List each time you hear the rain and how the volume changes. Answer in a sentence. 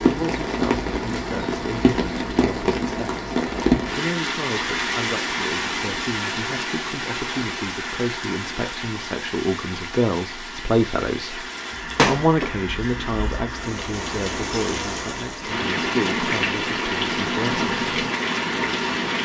You can hear the rain from 0.0 to 19.2 s, getting quieter then louder.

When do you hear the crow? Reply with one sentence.
You can't hear the crow here.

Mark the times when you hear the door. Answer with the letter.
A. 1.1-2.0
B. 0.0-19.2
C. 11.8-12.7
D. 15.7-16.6
C.